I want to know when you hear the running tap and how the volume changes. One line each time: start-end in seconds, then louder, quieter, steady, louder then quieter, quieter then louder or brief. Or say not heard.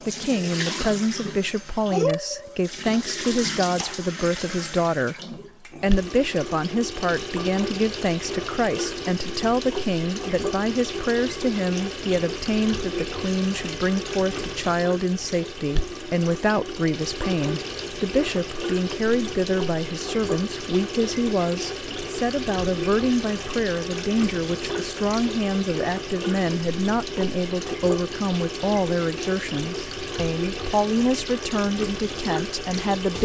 0.0-33.2 steady.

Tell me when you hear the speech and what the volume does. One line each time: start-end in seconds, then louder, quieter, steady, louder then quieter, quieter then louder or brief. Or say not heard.
0.1-33.2 steady.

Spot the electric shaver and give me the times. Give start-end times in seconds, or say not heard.
not heard.